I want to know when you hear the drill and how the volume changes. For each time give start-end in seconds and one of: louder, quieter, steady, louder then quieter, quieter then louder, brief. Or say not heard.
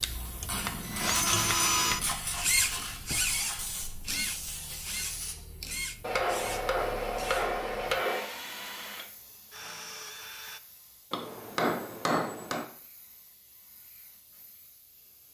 0.0-10.6 quieter.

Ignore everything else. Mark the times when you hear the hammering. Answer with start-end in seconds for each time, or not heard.
0.5-2.0, 6.0-8.3, 11.1-12.7.